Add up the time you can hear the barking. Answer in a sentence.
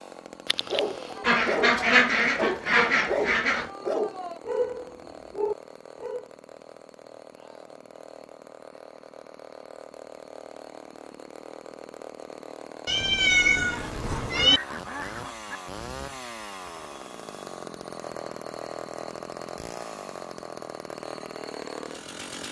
You can hear the barking for 6 seconds altogether.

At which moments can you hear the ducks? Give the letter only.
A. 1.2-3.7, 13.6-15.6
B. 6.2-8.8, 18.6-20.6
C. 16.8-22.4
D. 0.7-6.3
A.